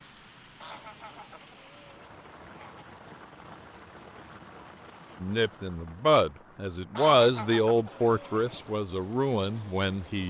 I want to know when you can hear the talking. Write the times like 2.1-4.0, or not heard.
5.2-10.2.